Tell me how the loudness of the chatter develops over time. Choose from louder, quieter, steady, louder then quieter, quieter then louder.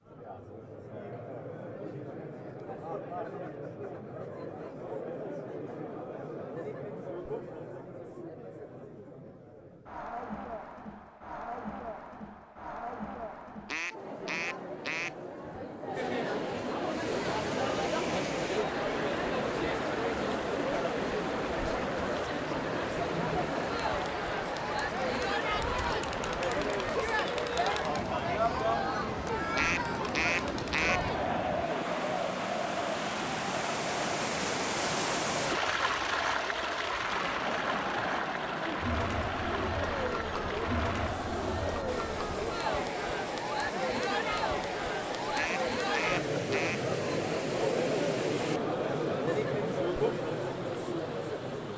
louder.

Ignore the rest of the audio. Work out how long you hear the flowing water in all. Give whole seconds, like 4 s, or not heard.
35 s.